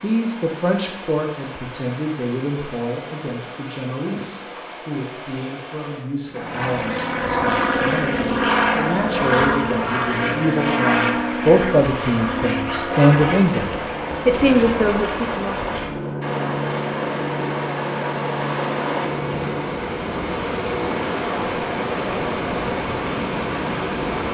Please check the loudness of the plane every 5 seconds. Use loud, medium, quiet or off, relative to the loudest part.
off, loud, loud, medium, medium.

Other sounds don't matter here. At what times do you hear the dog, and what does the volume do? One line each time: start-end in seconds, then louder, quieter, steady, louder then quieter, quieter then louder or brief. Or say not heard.
not heard.